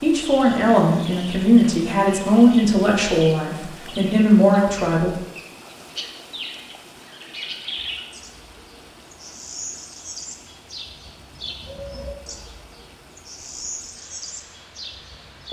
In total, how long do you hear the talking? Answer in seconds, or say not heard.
5 s.